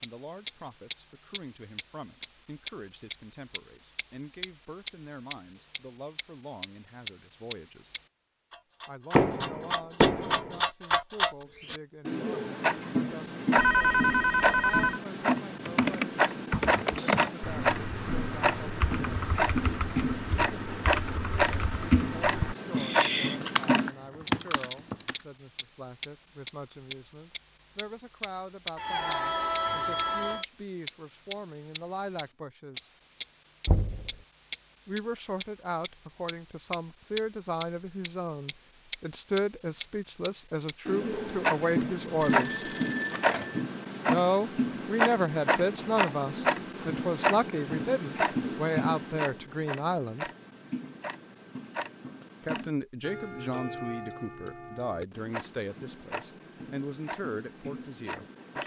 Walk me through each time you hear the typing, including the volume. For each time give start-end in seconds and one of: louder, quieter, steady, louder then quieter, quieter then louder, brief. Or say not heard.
15.7-25.2 quieter then louder.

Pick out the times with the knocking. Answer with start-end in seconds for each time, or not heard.
9.2-10.6, 33.6-34.1.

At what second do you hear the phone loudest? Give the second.
14 s.